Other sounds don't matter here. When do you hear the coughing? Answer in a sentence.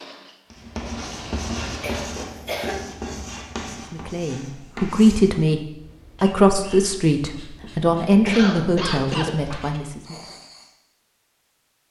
The coughing can be heard from 1.8 to 2.9 s and from 8.2 to 9.6 s.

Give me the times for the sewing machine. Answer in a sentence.
You can hear the sewing machine from 0.0 to 2.1 s.